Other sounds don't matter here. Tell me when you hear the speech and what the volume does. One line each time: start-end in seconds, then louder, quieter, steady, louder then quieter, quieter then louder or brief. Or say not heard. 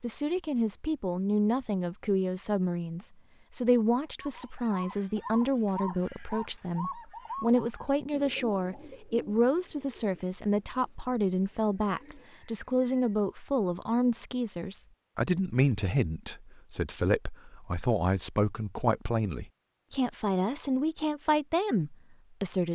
0.0-22.7 steady.